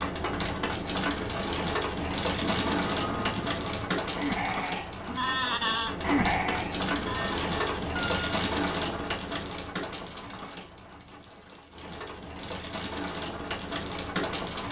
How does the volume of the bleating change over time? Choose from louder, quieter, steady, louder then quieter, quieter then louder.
louder then quieter.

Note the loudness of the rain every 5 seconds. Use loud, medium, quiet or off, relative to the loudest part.
loud, loud, medium.